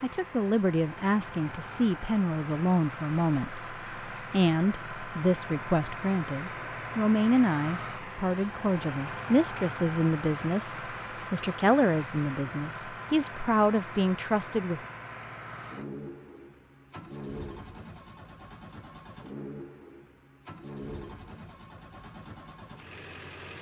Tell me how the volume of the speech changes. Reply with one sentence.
The volume of the speech stays about the same.